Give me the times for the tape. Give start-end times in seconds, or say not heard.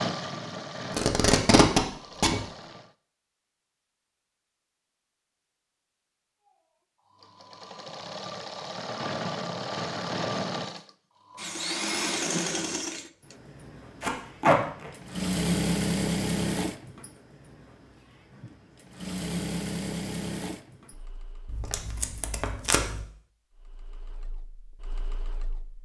0.9-2.4, 14.0-14.9, 21.4-23.0.